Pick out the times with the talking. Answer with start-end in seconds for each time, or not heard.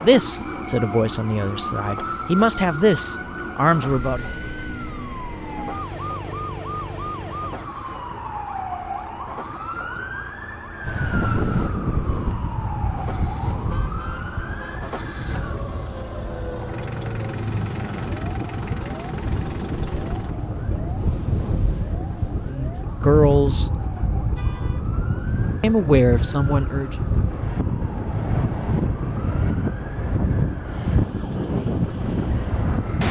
0.0-4.3, 22.4-23.7, 25.6-26.9.